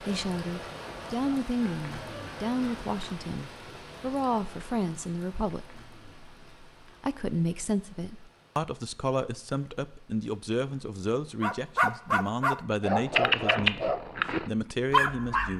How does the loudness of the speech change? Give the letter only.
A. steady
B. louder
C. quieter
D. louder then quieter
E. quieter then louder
A.